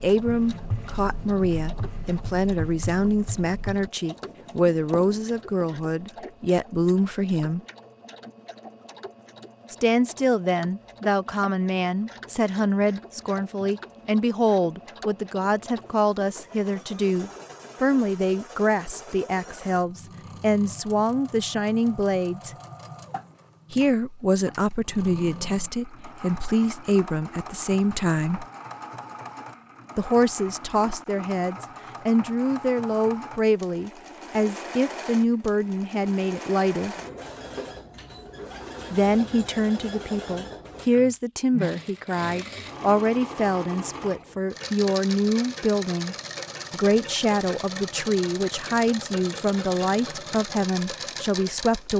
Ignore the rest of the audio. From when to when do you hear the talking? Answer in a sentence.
The talking can be heard from 0.0 to 7.6 s, from 9.7 to 22.5 s, from 23.7 to 28.4 s, from 29.9 to 37.0 s and from 38.9 to 51.9 s.